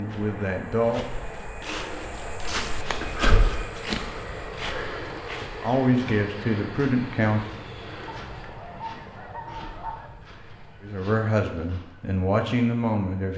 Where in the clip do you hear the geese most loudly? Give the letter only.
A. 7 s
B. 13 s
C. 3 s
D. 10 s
D.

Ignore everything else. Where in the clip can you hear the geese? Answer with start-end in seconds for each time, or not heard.
8.1-10.1.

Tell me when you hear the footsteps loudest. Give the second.
3 s.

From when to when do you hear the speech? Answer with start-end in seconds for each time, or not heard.
0.0-1.2, 5.6-7.4, 10.8-13.3.